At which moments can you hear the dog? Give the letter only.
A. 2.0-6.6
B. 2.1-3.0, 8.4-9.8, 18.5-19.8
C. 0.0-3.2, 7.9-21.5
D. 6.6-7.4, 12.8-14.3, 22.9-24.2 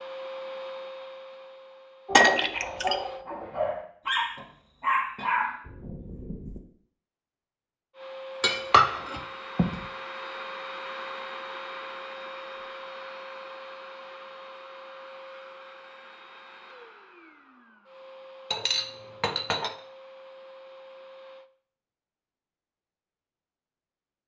A.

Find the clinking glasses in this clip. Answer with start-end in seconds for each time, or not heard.
2.1-3.0, 8.4-9.8, 18.5-19.8.